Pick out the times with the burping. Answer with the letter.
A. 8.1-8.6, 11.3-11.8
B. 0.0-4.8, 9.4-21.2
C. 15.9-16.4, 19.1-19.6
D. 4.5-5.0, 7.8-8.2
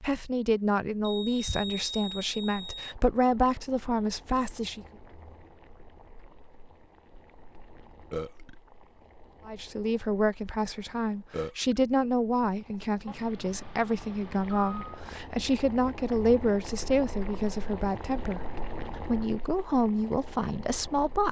A.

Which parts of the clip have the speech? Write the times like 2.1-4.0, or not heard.
0.0-4.8, 9.4-21.2.